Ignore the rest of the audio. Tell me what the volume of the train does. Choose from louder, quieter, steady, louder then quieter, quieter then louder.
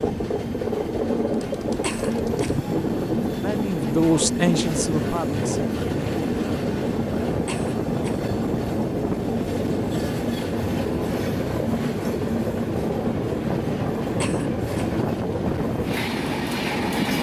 steady.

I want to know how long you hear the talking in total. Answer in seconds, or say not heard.
2 s.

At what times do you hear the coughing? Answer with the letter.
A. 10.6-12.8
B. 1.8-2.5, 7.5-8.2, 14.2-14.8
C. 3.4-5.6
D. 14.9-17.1
B.